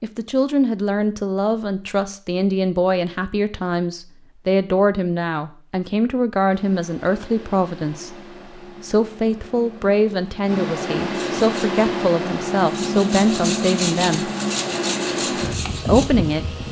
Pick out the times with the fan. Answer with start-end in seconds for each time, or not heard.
6.5-16.6.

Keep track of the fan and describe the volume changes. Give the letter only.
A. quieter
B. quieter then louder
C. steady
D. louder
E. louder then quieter
D.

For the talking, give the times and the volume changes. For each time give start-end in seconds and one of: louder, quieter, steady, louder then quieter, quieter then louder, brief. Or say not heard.
0.0-14.3 steady
15.8-16.6 brief.